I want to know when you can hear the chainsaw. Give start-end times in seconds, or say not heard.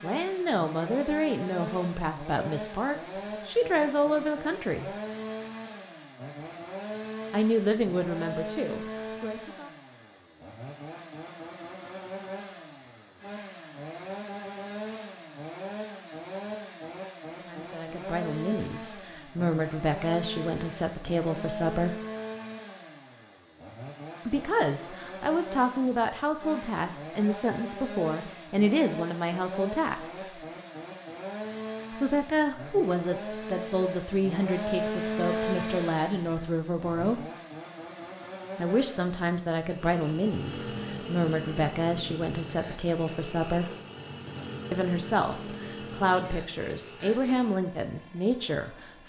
0.0-49.0.